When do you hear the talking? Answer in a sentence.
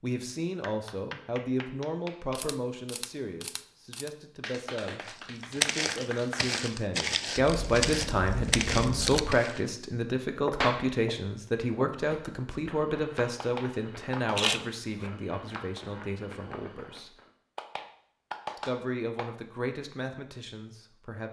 You can hear the talking from 0.0 to 17.1 s and from 18.6 to 21.2 s.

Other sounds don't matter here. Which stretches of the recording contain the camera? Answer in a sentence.
The camera can be heard from 2.4 to 4.1 s, from 7.5 to 9.4 s and from 14.3 to 15.1 s.